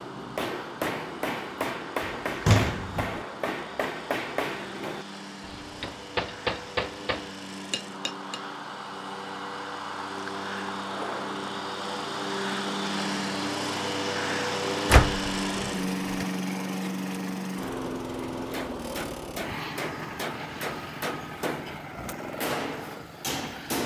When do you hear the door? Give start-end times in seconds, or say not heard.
2.5-3.1, 14.9-16.2.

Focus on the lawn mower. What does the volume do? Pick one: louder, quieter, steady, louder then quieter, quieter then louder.
louder then quieter.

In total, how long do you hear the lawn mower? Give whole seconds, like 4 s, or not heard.
24 s.